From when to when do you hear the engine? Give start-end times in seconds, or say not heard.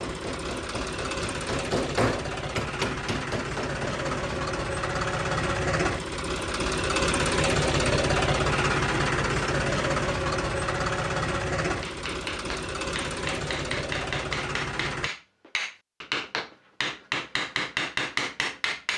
0.0-15.1.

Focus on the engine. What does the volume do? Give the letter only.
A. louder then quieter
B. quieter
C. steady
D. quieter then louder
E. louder
A.